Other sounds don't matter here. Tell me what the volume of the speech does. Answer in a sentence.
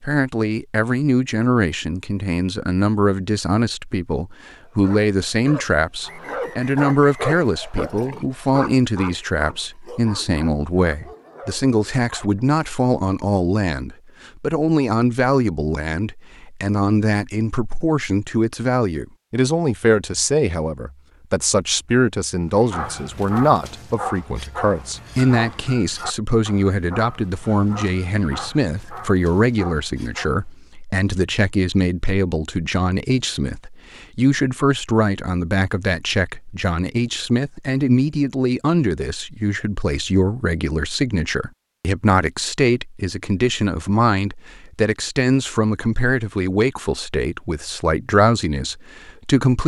The loudness of the speech stays about the same.